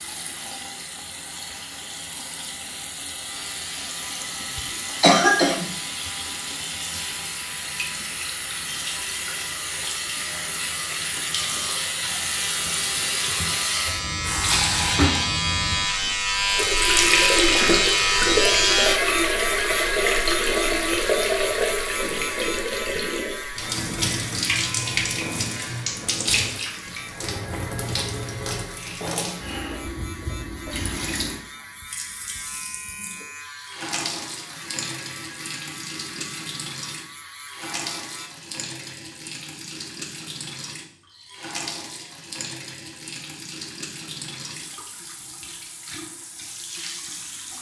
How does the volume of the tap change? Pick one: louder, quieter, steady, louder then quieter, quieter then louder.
louder then quieter.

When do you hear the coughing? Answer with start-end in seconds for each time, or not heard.
4.5-5.7.